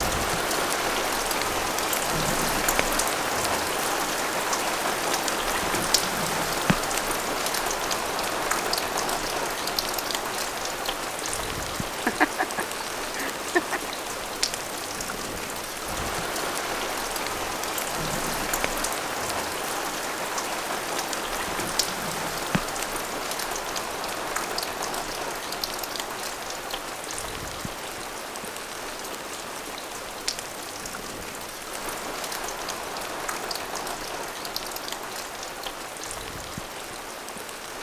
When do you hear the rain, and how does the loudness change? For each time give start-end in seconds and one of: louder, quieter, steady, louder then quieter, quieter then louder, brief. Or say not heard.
0.0-37.7 quieter.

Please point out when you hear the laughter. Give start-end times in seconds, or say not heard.
12.1-13.8.